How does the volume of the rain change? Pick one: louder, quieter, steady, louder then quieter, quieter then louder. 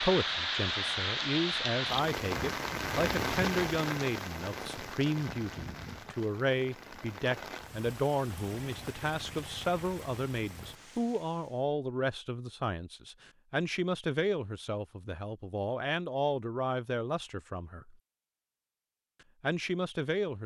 quieter.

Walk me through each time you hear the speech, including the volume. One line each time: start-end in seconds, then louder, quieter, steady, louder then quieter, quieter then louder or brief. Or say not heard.
0.0-17.9 steady
19.4-20.4 brief.